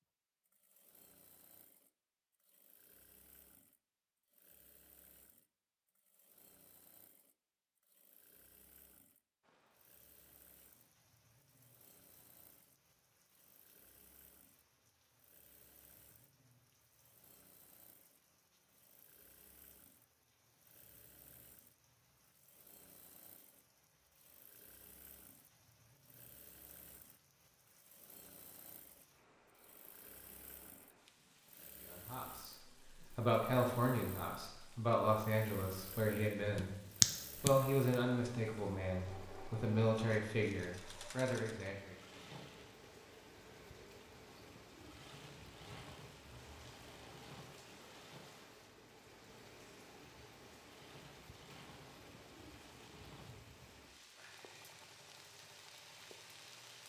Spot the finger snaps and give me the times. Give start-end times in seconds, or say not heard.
36.5-38.0.